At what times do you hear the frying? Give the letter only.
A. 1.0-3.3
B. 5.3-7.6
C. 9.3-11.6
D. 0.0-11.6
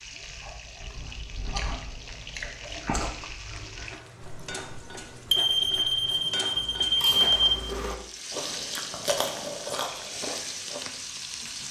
D.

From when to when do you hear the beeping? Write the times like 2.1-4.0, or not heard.
5.3-7.6.